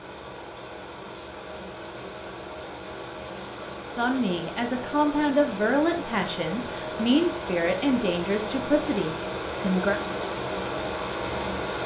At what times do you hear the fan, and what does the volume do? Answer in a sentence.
The fan can be heard from 0.0 to 11.8 s, getting louder.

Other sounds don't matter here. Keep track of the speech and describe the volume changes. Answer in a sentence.
The loudness of the speech stays about the same.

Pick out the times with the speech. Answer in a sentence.
You can hear the speech from 4.0 to 10.0 s.